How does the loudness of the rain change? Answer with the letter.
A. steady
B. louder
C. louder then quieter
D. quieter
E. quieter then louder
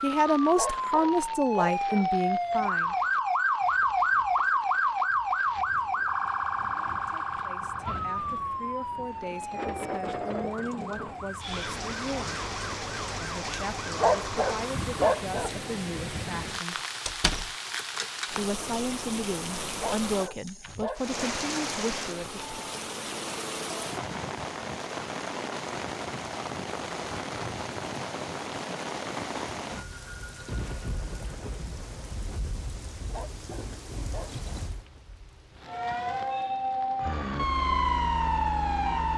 C.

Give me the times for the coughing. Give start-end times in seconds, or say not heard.
not heard.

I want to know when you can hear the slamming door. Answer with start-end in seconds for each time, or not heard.
17.1-17.5.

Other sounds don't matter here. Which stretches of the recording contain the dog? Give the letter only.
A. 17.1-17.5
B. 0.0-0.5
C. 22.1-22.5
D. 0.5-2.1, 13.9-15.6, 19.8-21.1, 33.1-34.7
D.